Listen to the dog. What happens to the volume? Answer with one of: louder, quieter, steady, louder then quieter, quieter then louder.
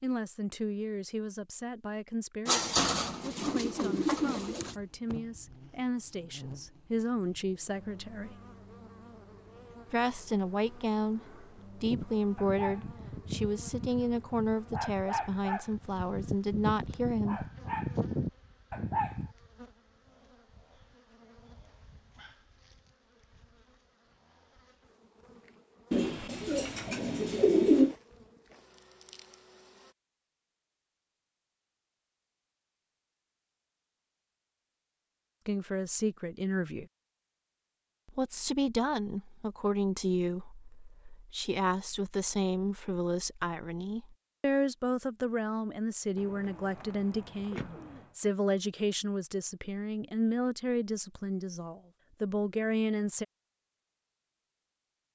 louder.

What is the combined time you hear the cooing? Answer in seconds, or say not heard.
6 s.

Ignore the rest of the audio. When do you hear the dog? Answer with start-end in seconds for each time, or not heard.
11.8-19.4.